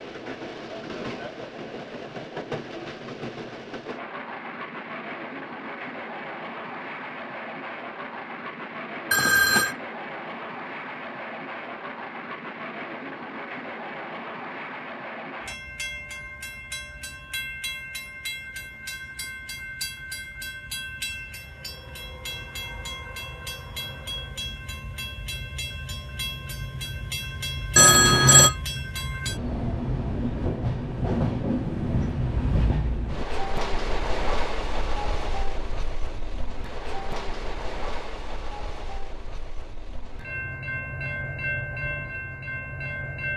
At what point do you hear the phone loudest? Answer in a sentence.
The volume of the phone peaks at 28 seconds.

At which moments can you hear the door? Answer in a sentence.
The door can't be heard in this clip.